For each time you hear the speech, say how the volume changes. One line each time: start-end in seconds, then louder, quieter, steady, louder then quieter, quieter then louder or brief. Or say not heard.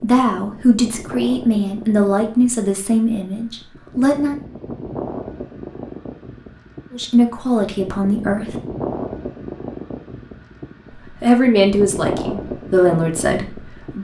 0.0-4.3 quieter
6.9-8.6 brief
11.1-13.9 brief.